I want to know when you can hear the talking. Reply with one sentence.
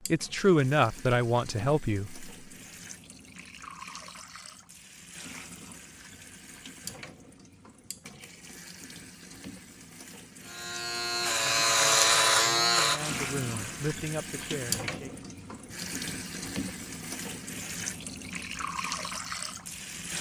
The talking can be heard from 0.1 to 2.2 s and from 11.4 to 15.3 s.